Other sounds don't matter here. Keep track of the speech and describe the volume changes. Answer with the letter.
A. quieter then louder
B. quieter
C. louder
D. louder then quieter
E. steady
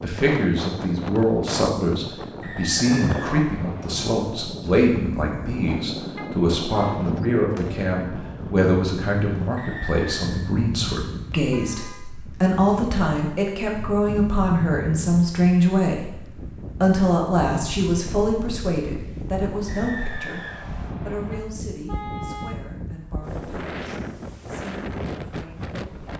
B.